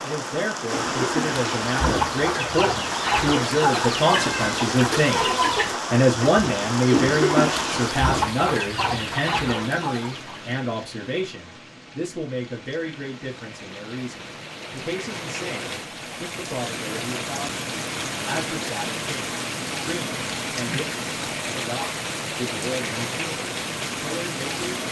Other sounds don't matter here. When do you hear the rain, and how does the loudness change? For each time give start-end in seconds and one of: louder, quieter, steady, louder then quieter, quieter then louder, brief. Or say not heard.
0.0-24.8 quieter then louder.